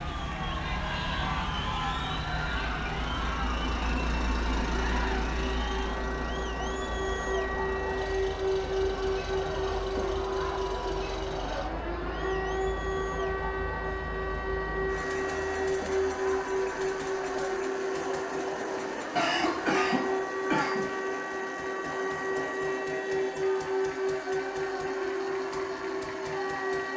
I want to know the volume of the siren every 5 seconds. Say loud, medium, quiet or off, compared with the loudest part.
medium, loud, loud, loud, loud, loud.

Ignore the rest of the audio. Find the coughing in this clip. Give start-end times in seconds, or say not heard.
19.1-20.9.